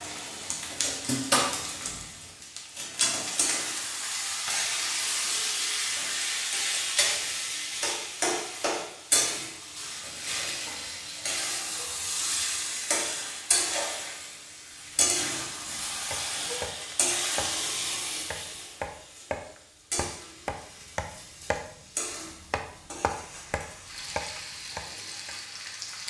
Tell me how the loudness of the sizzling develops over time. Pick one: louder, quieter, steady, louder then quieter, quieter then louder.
quieter.